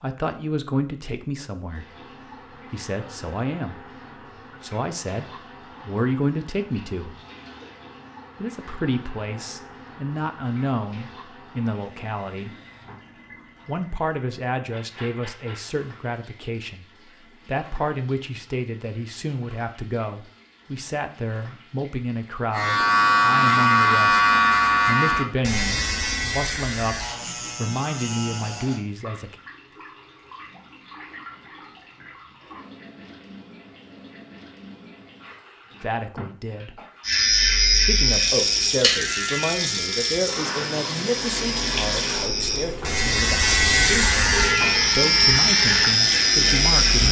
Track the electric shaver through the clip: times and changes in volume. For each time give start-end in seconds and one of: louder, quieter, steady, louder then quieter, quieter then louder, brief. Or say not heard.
22.5-28.8 quieter
37.0-47.0 quieter then louder.